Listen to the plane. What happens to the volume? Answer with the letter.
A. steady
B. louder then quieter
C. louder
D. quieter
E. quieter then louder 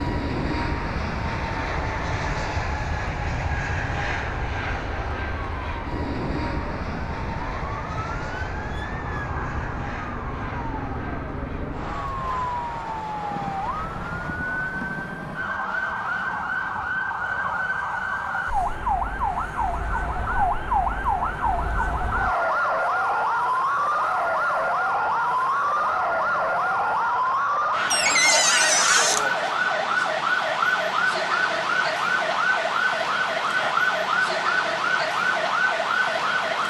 D.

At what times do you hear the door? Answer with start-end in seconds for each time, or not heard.
27.9-29.2.